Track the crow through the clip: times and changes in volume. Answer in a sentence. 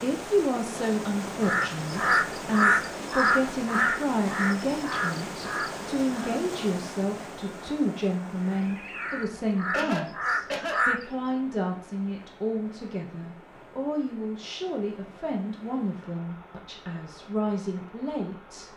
The crow can be heard from 1.4 to 6.4 s, getting quieter; and briefly from 8.3 to 11.1 s.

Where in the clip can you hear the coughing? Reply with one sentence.
You can hear the coughing from 9.7 to 10.8 s.